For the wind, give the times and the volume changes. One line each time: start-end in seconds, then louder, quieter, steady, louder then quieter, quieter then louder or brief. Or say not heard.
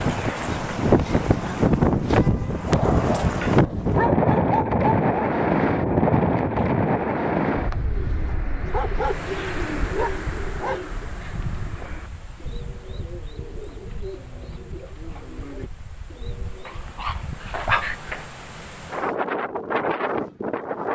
0.0-20.9 quieter then louder.